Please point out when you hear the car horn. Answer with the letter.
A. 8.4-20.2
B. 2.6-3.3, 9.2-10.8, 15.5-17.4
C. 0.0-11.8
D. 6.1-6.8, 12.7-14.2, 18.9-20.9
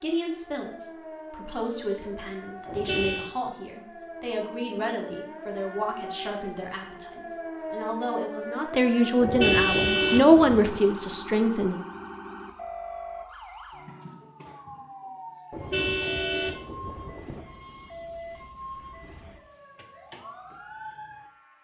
B.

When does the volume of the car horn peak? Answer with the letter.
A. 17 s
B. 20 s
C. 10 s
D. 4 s
C.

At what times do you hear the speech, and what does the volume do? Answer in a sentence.
You can hear the speech from 0.0 to 11.8 s, getting louder.